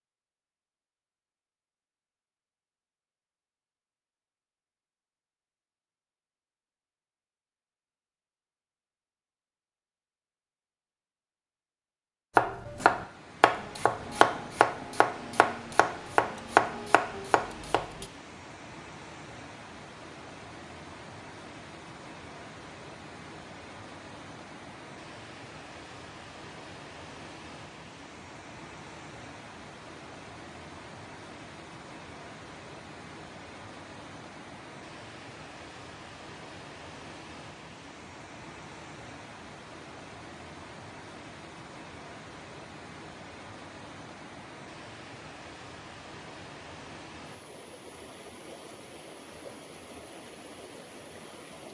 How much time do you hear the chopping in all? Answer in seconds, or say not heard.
6 s.